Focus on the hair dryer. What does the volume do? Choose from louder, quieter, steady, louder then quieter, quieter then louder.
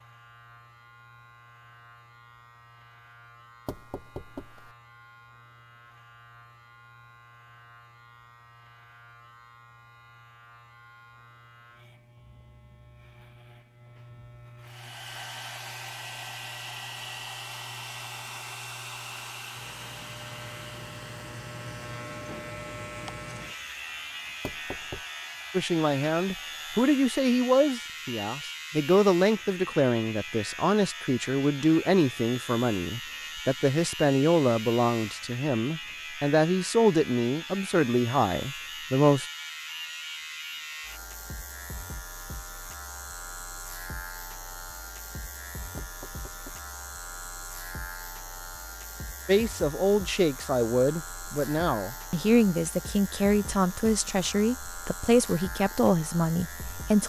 quieter.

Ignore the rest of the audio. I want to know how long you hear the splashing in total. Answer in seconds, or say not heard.
not heard.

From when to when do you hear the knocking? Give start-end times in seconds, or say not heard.
3.6-4.8, 24.4-25.1, 45.8-46.7.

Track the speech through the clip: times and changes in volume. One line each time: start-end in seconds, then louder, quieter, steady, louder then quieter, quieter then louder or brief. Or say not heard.
25.5-39.2 steady
49.2-57.0 steady.